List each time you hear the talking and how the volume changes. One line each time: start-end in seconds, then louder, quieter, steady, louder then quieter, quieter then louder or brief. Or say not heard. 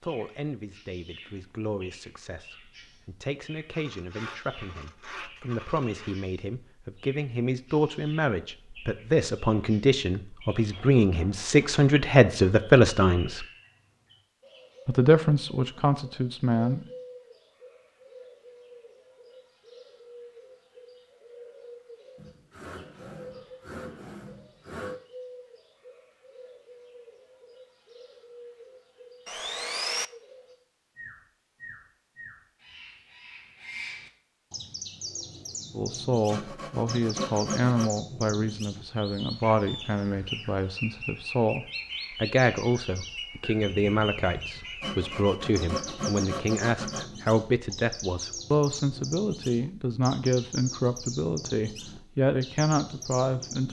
0.0-13.4 louder
14.8-16.9 brief
35.8-53.6 steady.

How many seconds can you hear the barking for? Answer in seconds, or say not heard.
not heard.